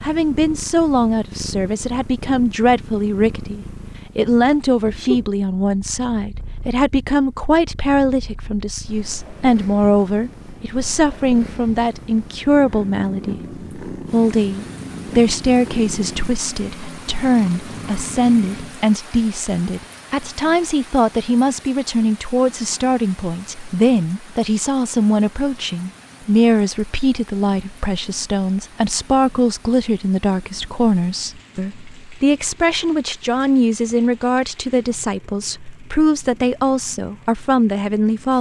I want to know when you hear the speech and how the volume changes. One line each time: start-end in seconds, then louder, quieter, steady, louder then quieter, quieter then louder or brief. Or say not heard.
0.0-38.3 steady.